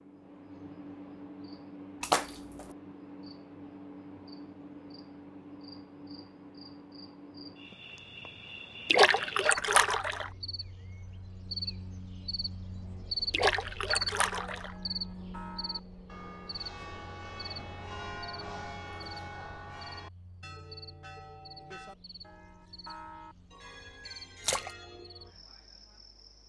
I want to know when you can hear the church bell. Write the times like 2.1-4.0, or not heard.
14.3-25.4.